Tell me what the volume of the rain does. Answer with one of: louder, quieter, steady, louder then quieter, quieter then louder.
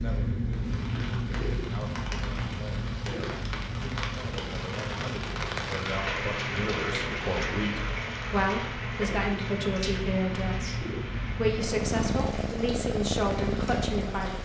louder then quieter.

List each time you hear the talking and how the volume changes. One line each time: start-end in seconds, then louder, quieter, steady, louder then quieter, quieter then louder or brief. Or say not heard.
0.0-14.4 louder.